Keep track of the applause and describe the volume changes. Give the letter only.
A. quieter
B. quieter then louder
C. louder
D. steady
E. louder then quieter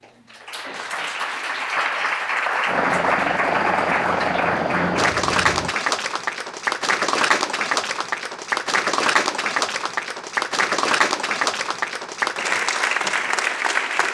D.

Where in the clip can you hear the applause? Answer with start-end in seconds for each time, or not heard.
0.0-14.1.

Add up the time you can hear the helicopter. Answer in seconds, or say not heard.
3 s.